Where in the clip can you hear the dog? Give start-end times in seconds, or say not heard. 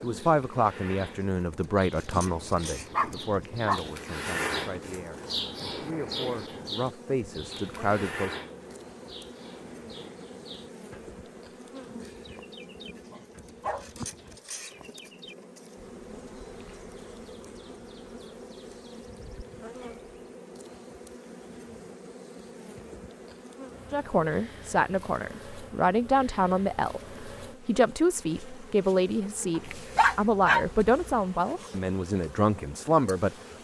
2.2-3.9, 13.1-14.3, 29.6-31.2.